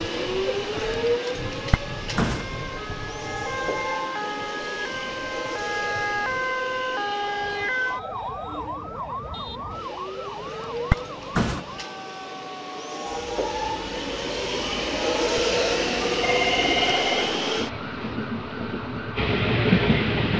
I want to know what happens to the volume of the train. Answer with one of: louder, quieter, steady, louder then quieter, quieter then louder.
quieter then louder.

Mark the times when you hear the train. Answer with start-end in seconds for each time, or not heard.
0.0-20.3.